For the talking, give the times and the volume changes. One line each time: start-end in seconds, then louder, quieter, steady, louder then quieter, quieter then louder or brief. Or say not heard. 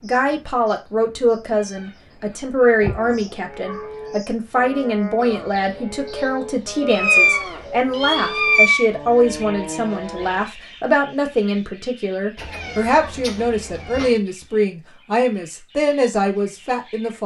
0.0-17.2 steady.